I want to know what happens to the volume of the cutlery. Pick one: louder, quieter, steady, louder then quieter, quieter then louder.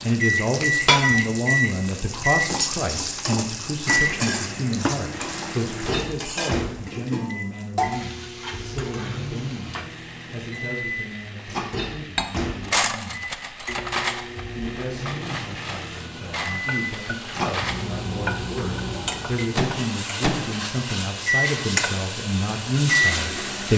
quieter.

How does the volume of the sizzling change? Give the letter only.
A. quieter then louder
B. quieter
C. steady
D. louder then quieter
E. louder
A.